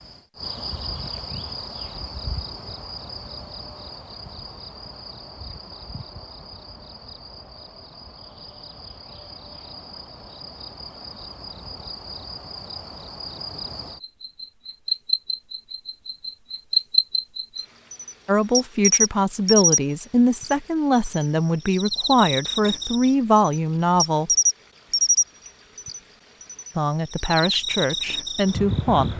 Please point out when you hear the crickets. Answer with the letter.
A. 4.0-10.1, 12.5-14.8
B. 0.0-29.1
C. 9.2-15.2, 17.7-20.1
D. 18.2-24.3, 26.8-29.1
B.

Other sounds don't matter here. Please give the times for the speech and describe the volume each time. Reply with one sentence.
The speech can be heard from 18.2 to 24.3 s, at a steady volume; and briefly from 26.8 to 29.1 s.